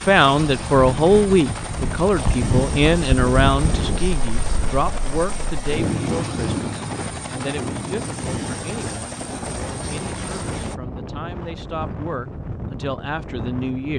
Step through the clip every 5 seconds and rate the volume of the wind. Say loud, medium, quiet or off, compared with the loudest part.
loud, loud, medium.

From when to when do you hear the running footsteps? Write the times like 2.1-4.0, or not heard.
not heard.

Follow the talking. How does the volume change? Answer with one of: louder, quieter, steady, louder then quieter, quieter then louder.
quieter then louder.